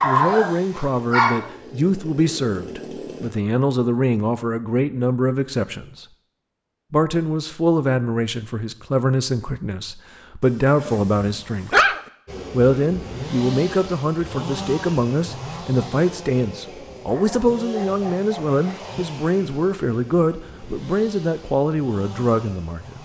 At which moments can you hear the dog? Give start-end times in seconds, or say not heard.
0.0-1.5, 10.4-12.0, 17.1-19.1.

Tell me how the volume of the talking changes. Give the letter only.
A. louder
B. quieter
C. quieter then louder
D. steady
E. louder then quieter
D.